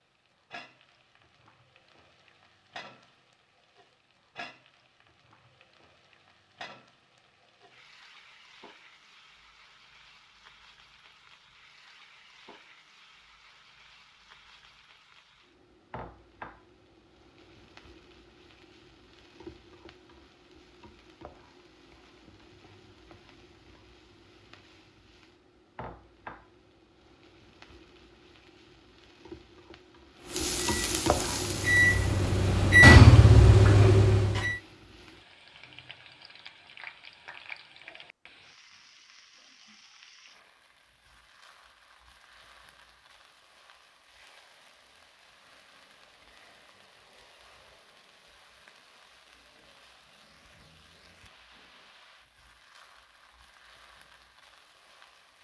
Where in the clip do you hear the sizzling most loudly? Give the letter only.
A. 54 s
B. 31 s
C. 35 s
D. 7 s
B.